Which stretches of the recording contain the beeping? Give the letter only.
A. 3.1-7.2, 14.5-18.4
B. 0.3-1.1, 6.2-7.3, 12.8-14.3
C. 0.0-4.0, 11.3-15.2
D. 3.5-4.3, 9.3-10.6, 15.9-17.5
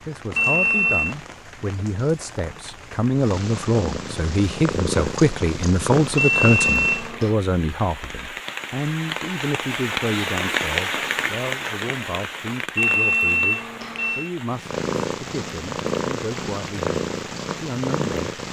B.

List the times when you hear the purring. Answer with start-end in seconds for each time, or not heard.
3.1-7.2, 14.5-18.4.